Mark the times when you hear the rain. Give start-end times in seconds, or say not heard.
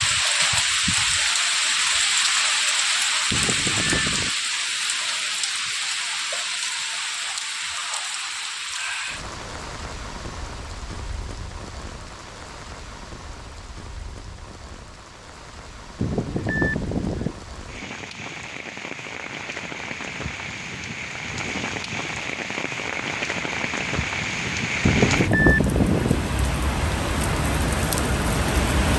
0.0-28.9.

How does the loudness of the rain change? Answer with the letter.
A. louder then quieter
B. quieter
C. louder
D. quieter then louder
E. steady
D.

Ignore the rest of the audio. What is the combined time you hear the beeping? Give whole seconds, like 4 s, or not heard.
4 s.